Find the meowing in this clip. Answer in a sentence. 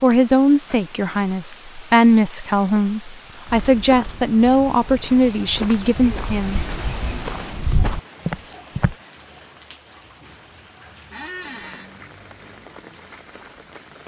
The meowing can't be heard in this clip.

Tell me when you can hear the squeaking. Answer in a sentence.
You can hear the squeaking from 11.1 to 11.9 s.